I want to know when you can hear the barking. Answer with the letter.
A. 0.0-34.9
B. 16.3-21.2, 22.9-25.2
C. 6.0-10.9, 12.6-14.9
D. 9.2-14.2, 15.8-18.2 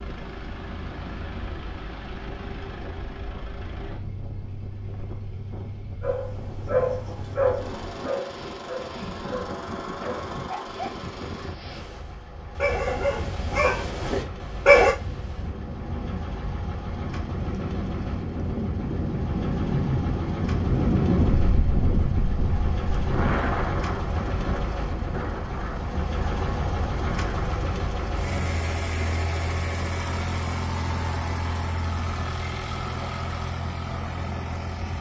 C.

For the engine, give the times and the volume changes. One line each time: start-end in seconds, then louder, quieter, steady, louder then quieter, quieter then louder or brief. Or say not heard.
0.0-34.9 louder.